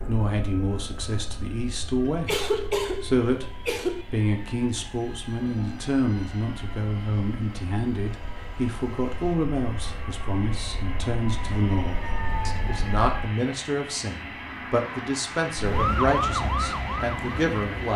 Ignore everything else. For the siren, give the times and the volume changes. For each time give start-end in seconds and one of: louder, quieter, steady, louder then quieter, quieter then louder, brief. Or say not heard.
0.0-13.3 louder
15.6-17.8 brief.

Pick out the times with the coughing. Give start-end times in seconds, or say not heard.
2.0-4.0.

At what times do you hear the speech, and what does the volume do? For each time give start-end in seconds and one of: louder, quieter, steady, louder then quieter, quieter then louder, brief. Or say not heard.
0.1-17.9 steady.